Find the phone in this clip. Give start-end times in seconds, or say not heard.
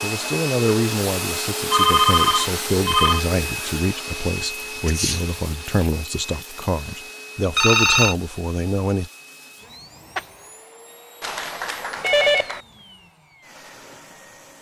1.7-3.2, 7.5-8.2, 11.2-12.6.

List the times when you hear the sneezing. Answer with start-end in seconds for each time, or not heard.
4.8-5.3.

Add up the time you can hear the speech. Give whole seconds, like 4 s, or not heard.
9 s.